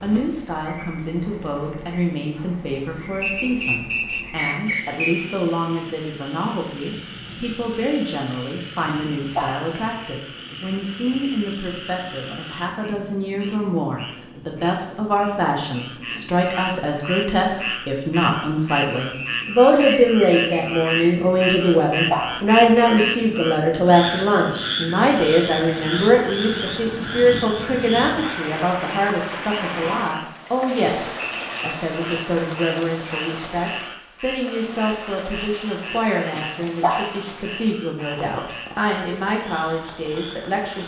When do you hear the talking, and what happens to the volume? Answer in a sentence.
The talking can be heard from 0.0 to 40.8 s, getting louder then quieter.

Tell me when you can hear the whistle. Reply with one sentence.
The whistle can be heard from 3.2 to 5.2 s, from 18.9 to 21.4 s and from 31.2 to 31.8 s.